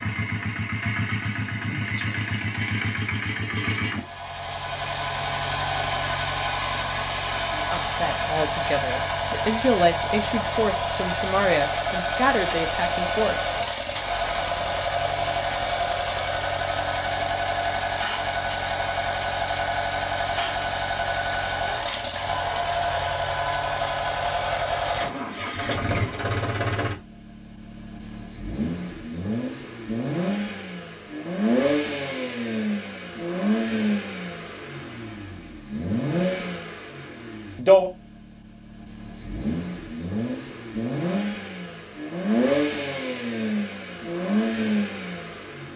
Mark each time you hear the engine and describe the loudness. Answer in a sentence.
You can hear the engine from 0.0 to 45.7 s, at a steady volume.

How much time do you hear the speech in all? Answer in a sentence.
You can hear the speech for 6 seconds altogether.